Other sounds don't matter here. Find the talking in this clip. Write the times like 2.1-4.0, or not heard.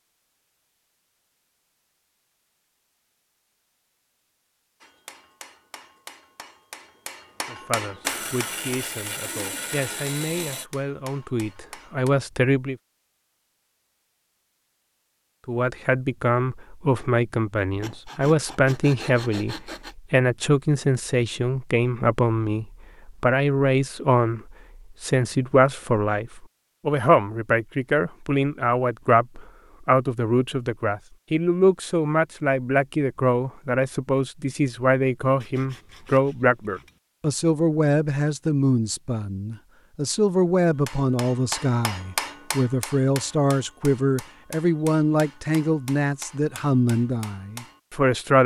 7.5-12.8, 15.4-48.4.